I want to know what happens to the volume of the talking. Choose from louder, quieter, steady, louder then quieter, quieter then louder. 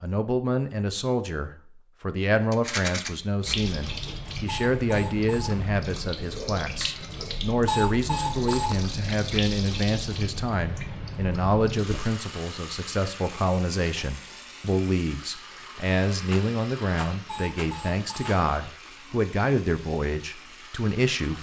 steady.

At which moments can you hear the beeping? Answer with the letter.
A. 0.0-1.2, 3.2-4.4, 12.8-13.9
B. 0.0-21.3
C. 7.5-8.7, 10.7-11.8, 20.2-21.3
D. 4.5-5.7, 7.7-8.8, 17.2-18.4
D.